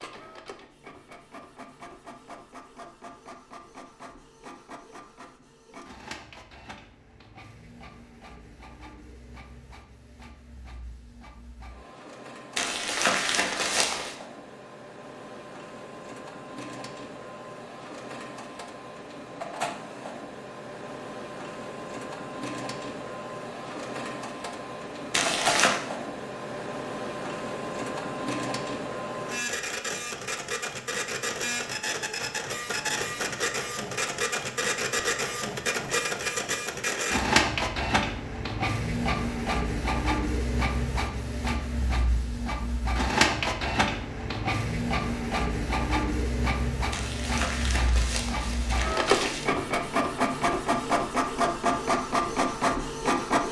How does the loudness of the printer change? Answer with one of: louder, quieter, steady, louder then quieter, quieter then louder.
louder.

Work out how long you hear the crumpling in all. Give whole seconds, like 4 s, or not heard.
5 s.